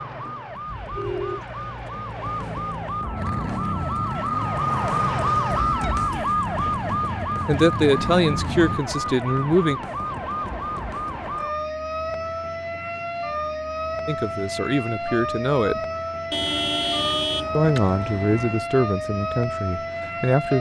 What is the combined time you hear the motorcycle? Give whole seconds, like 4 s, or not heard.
6 s.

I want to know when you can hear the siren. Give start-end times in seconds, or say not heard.
0.0-20.5.